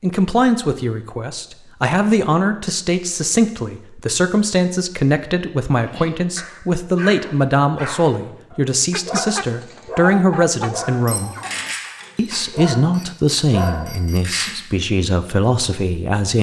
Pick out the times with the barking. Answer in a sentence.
The barking can be heard from 5.8 to 14.5 s.